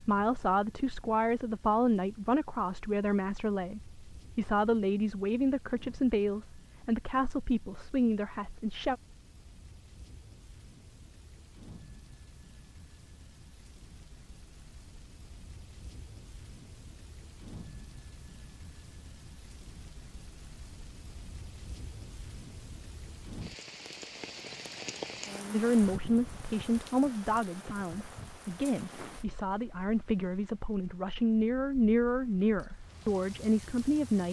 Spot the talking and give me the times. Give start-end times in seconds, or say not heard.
0.0-8.9, 25.5-34.2.